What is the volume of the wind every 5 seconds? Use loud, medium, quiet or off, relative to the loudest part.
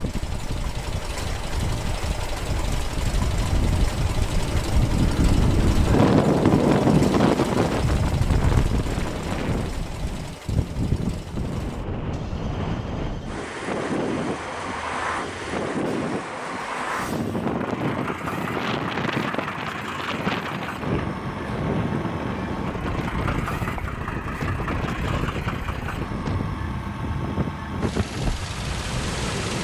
medium, loud, medium, medium, medium, medium.